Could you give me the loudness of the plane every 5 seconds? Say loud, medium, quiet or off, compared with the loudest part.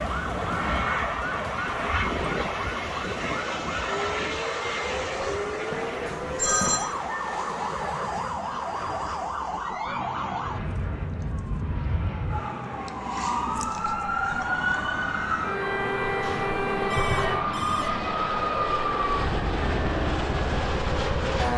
loud, medium, medium, loud, loud.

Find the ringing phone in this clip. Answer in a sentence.
You can hear the ringing phone from 5.7 to 6.8 s and from 16.9 to 17.9 s.